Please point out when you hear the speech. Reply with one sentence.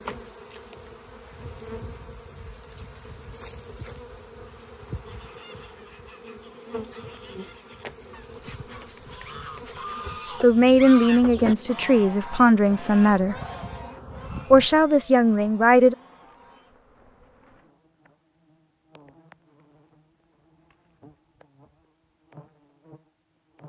The speech can be heard from 10.4 to 13.3 s and from 14.5 to 15.9 s.